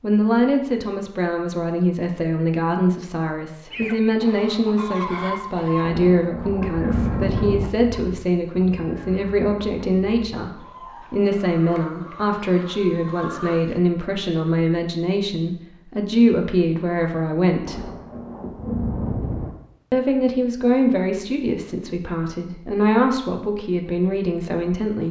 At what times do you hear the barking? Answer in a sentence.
The barking can't be heard in this clip.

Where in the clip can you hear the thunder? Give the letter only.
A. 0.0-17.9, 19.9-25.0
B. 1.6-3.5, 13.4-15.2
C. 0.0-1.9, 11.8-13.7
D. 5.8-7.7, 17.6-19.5
D.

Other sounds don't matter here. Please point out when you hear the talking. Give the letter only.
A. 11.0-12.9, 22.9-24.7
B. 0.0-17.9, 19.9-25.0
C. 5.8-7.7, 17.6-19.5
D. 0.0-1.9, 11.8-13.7
B.